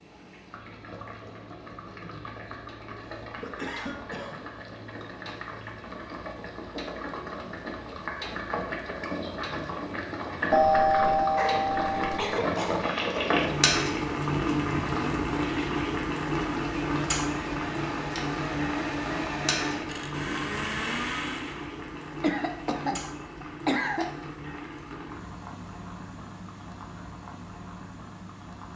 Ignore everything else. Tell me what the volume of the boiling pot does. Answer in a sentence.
The loudness of the boiling pot goes up, then down.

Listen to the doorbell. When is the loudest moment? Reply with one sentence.
The loudest moment of the doorbell is at 11 seconds.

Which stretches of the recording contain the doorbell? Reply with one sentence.
You can hear the doorbell from 10.5 to 12.2 s.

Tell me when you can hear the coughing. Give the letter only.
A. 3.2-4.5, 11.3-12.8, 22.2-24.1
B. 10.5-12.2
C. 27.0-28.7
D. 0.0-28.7
A.